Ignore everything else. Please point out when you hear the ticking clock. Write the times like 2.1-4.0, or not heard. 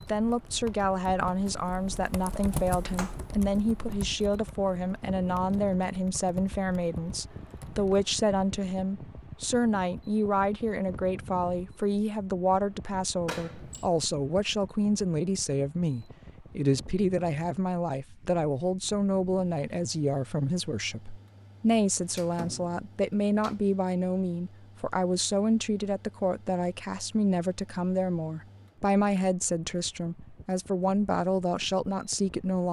not heard.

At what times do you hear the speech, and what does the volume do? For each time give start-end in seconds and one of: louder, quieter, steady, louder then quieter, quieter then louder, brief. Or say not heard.
0.0-32.6 steady.